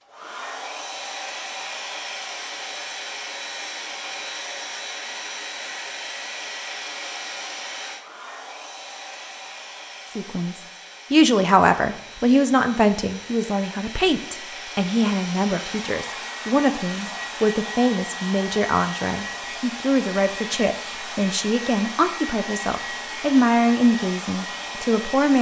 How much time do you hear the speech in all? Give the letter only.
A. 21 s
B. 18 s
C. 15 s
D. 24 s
C.